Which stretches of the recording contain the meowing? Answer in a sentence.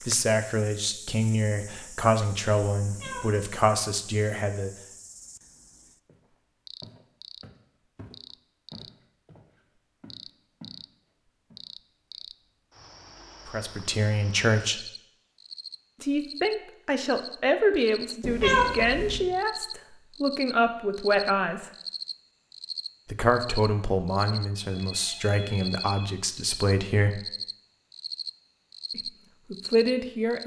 The meowing can be heard from 2.8 to 3.5 s and from 18.2 to 19.2 s.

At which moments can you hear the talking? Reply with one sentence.
The talking can be heard from 0.0 to 4.7 s, from 13.4 to 14.9 s, from 16.0 to 21.7 s, from 23.1 to 27.2 s and from 28.9 to 30.4 s.